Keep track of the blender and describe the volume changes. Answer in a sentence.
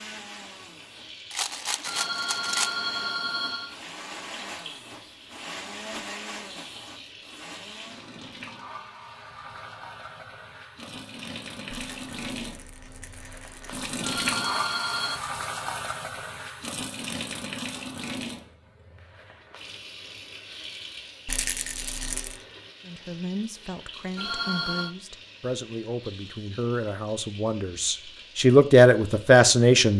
The loudness of the blender goes up, then down.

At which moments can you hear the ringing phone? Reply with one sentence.
The ringing phone can be heard from 1.9 to 3.8 s, from 14.0 to 15.2 s and from 24.1 to 24.9 s.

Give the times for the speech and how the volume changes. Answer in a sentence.
The speech can be heard from 22.9 to 29.9 s, getting louder.